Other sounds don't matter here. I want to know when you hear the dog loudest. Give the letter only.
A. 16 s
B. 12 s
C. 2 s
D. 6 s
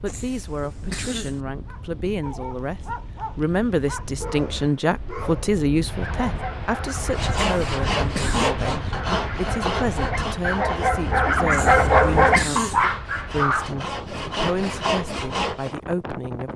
B.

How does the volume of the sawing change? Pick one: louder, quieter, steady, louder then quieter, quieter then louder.
quieter then louder.